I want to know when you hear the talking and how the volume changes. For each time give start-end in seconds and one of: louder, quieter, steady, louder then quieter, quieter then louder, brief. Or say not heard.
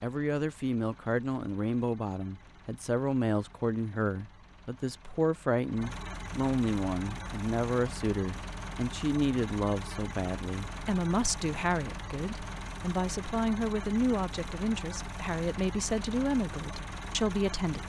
0.0-17.8 steady.